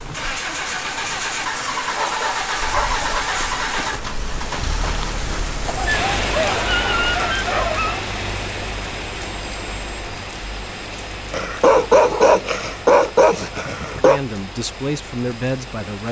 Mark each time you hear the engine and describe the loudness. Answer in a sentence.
You can hear the engine from 0.1 to 16.0 s, getting quieter.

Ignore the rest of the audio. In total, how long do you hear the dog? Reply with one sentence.
You can hear the dog for 7 seconds altogether.